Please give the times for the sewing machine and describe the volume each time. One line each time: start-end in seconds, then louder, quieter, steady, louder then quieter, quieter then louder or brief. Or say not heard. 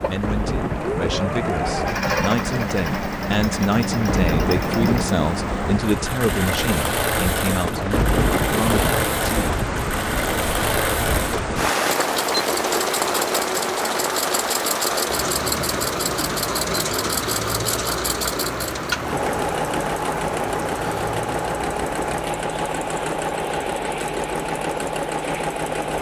0.0-25.9 steady.